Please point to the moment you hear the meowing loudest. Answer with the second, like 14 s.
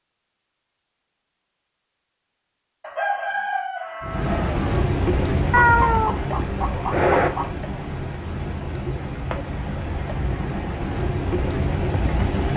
6 s.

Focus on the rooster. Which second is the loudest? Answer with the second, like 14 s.
3 s.